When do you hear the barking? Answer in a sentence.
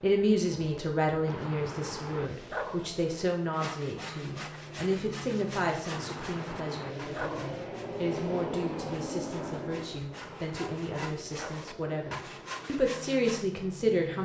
You can hear the barking from 1.2 to 2.9 s, from 5.9 to 7.5 s and from 10.1 to 11.8 s.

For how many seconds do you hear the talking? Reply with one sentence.
You can hear the talking for 14 seconds altogether.